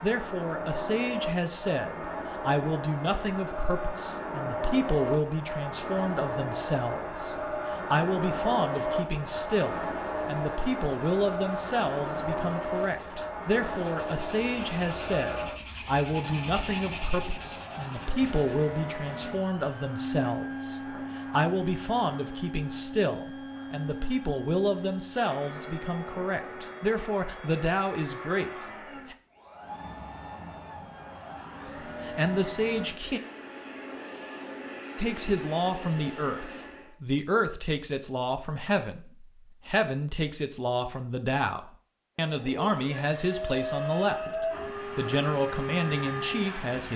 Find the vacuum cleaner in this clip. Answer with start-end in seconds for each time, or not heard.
0.0-37.0, 42.2-46.9.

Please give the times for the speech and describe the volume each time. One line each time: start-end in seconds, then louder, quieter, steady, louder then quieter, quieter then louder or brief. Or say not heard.
0.0-29.1 steady
32.0-33.2 brief
35.0-46.9 steady.